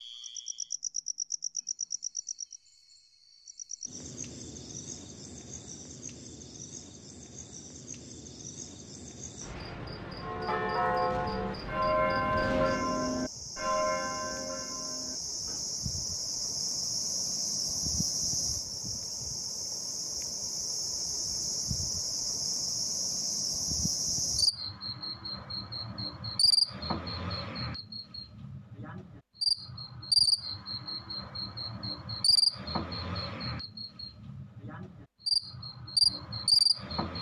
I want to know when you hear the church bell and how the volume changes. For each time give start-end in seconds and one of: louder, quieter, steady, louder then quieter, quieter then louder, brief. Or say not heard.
10.2-15.7 quieter.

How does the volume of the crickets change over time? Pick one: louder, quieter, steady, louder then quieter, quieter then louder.
louder.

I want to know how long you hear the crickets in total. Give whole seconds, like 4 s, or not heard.
37 s.